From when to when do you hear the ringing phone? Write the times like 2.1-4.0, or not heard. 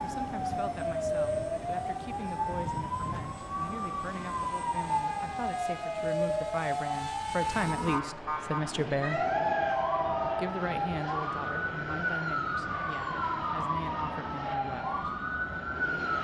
8.9-10.6.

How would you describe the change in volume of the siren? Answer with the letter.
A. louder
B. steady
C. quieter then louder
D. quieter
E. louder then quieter
B.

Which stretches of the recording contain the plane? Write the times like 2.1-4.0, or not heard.
0.0-16.1.